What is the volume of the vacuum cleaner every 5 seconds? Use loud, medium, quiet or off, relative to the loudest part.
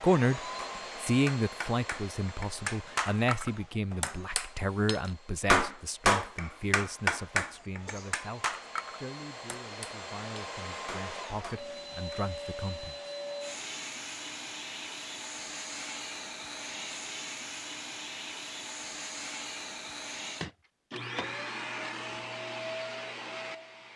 medium, medium, loud, loud, loud.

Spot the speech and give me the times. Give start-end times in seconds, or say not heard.
0.0-12.9.